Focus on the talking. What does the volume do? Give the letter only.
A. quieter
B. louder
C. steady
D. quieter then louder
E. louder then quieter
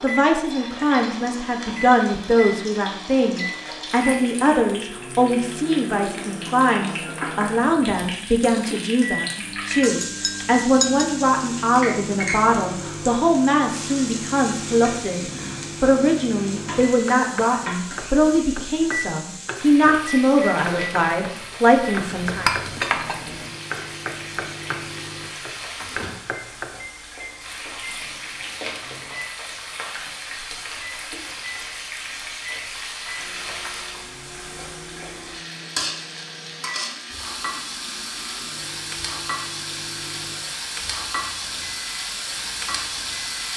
C.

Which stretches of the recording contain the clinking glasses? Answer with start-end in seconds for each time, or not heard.
9.8-11.2, 22.1-23.1.